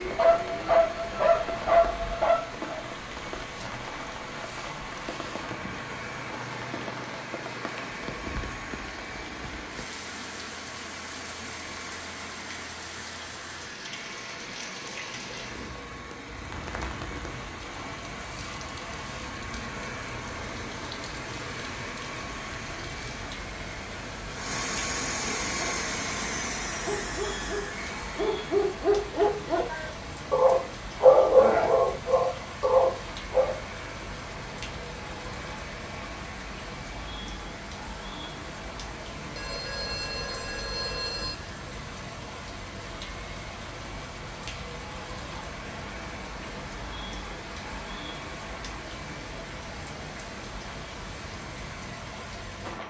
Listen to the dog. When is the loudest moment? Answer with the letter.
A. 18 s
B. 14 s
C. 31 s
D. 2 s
C.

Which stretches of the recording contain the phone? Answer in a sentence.
The phone can be heard from 39.4 to 41.4 s.